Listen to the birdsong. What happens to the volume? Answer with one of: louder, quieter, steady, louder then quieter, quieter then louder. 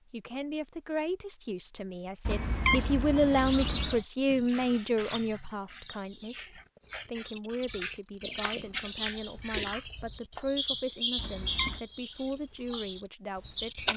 louder.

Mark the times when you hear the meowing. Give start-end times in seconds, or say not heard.
2.2-4.0, 11.2-11.8.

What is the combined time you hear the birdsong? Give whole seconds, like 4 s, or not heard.
10 s.